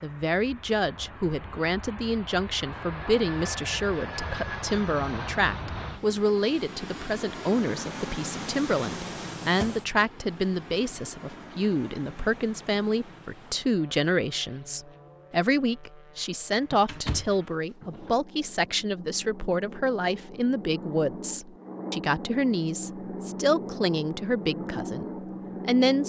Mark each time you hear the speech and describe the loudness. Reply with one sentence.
The speech can be heard from 0.0 to 26.0 s, at a steady volume.